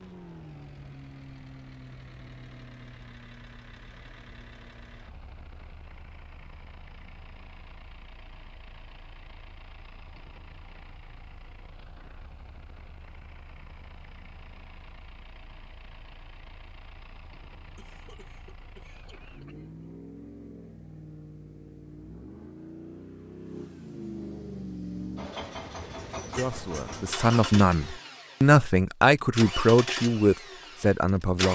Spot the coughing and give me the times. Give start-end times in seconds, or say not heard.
17.8-19.9.